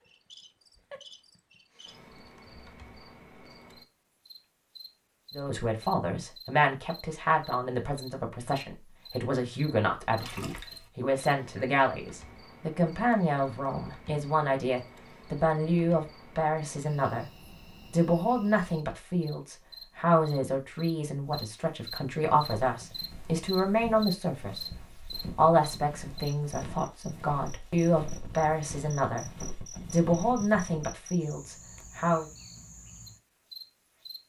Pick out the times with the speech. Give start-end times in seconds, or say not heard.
5.3-17.2, 17.9-24.6, 25.4-29.2, 29.9-32.3.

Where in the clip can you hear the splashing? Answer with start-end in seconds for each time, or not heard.
10.2-10.9.